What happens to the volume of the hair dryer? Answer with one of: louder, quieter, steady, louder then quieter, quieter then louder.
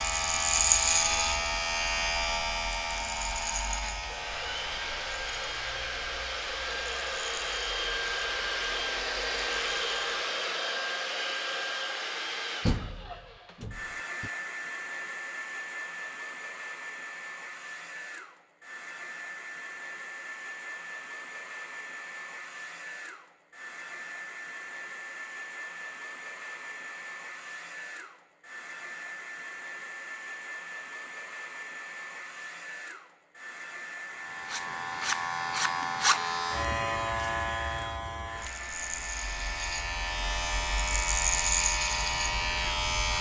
quieter.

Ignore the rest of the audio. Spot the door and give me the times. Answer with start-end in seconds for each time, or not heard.
12.6-14.3.